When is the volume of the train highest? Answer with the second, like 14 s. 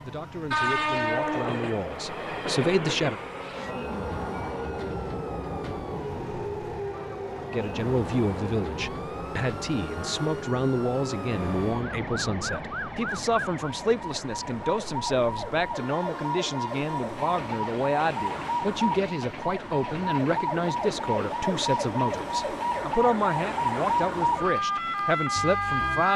1 s.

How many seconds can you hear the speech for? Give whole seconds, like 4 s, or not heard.
22 s.